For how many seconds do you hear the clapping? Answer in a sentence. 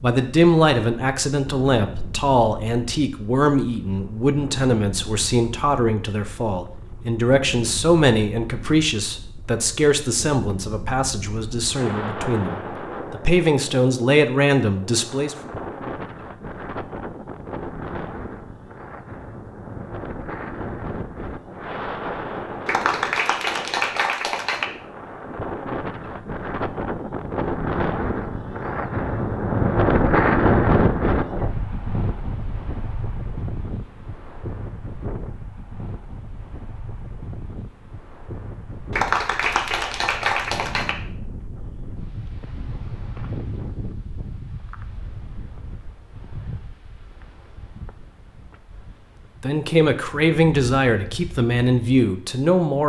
You can hear the clapping for 4 seconds altogether.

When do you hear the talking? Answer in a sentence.
You can hear the talking from 0.0 to 15.3 s and from 49.4 to 52.8 s.